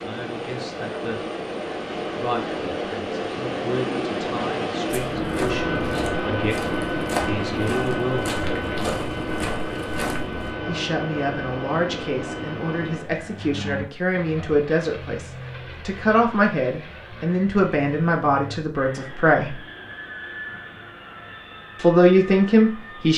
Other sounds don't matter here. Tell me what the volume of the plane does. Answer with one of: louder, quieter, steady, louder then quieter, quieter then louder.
quieter.